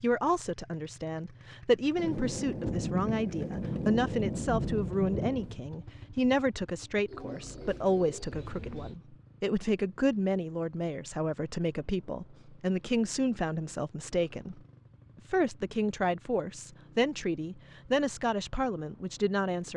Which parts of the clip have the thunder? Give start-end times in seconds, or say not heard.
1.9-5.7.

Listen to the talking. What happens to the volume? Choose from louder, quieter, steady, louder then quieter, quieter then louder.
steady.